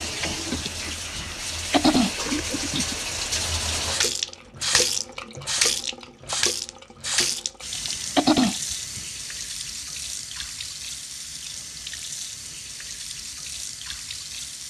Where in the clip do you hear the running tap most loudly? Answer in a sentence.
The volume of the running tap peaks at 5 seconds.